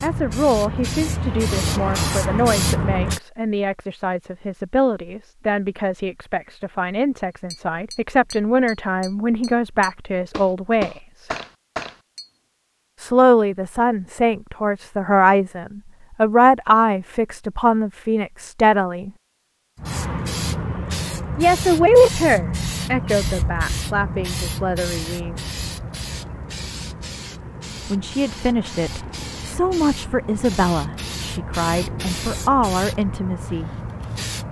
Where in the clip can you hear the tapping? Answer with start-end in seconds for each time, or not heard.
7.5-12.2.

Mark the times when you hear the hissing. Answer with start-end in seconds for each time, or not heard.
0.0-3.2, 19.8-34.4.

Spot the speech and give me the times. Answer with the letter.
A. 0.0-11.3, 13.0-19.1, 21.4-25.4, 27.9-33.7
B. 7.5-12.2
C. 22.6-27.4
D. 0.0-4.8
A.